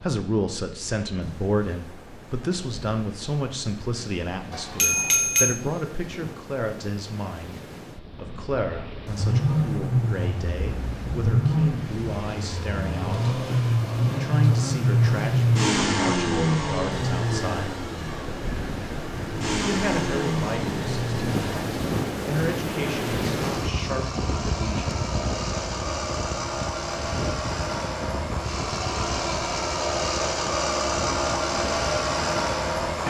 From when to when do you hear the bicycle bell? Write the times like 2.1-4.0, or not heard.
4.5-5.5.